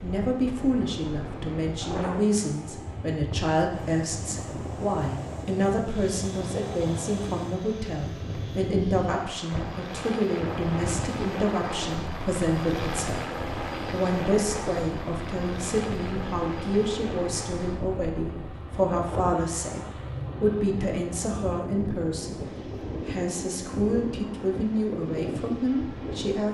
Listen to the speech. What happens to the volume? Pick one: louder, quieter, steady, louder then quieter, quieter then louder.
steady.